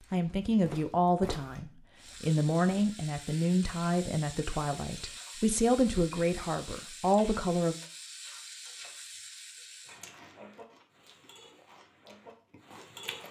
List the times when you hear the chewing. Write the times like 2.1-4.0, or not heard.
9.9-13.2.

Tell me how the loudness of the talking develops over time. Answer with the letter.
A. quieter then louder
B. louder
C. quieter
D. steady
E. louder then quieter
D.